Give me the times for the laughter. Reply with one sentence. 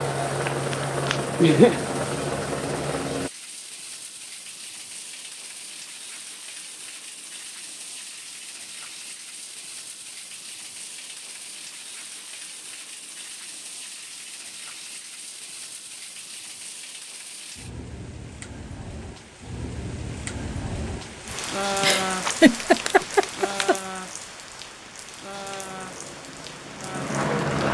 The laughter can be heard from 0.5 to 1.9 s and from 21.8 to 23.8 s.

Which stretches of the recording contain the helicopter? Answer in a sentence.
You can hear the helicopter from 0.0 to 3.3 s and from 25.3 to 27.6 s.